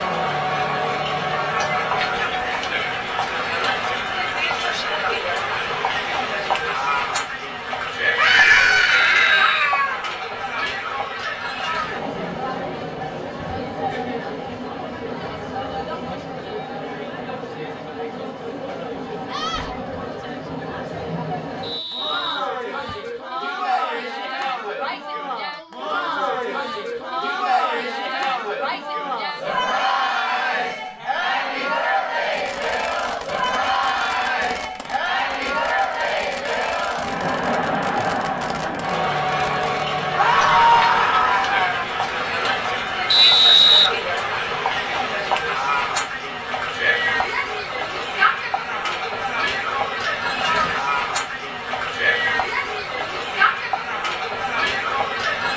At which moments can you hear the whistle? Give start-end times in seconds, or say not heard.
9.0-9.7, 21.6-23.1, 43.1-43.9.